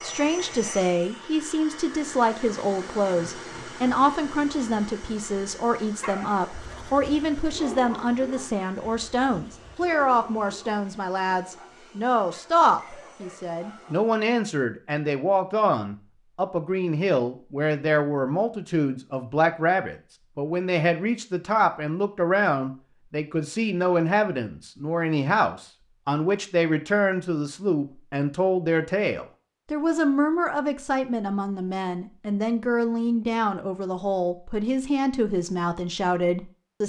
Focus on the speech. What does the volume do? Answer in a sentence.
The loudness of the speech stays about the same.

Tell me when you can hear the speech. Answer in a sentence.
You can hear the speech from 0.0 to 36.8 s.